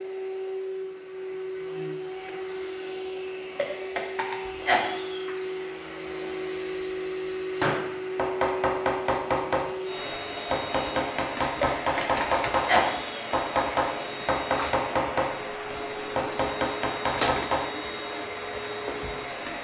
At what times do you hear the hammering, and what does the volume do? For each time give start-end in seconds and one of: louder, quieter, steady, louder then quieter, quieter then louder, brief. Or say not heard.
7.6-17.7 steady.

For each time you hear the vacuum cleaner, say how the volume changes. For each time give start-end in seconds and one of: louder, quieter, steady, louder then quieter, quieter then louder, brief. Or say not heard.
0.0-19.5 steady.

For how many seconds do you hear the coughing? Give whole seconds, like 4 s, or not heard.
3 s.